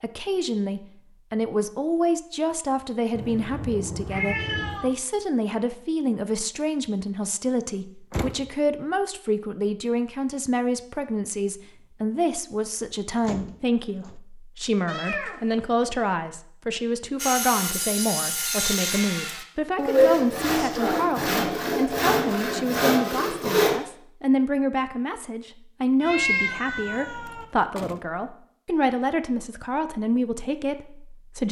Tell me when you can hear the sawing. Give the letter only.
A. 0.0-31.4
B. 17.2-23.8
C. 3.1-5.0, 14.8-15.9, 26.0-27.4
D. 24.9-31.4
B.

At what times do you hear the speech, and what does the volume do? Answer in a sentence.
The speech can be heard from 0.0 to 31.4 s, at a steady volume.